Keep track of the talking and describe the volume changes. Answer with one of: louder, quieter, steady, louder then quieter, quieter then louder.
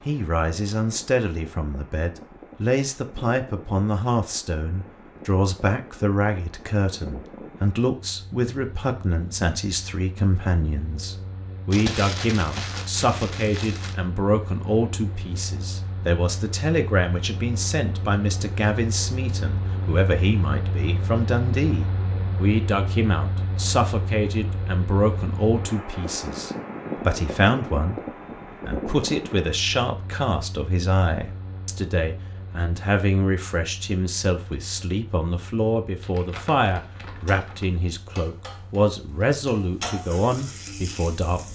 steady.